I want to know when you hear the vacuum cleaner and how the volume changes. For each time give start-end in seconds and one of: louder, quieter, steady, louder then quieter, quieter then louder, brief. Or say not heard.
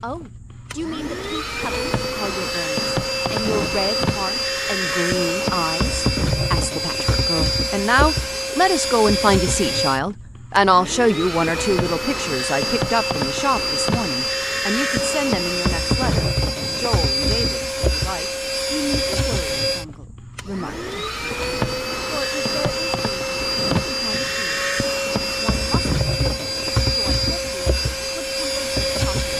0.0-29.3 steady.